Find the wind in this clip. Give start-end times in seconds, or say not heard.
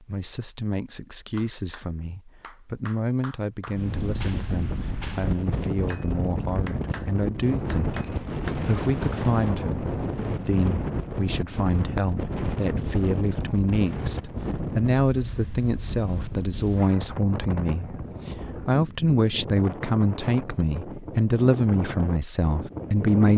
3.6-23.3.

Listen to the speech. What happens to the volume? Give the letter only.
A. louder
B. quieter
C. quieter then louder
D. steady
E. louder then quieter
A.